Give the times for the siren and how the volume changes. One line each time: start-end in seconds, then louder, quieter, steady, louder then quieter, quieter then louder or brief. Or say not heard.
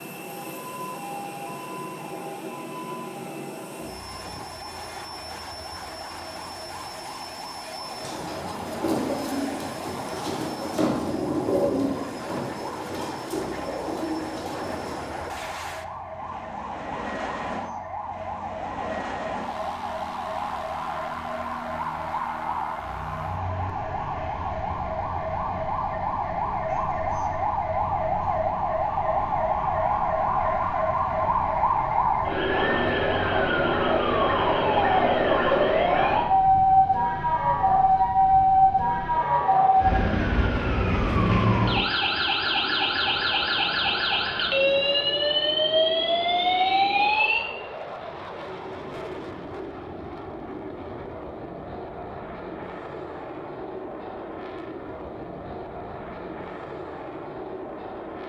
0.2-47.5 louder.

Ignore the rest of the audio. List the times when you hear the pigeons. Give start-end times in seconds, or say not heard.
7.8-15.1.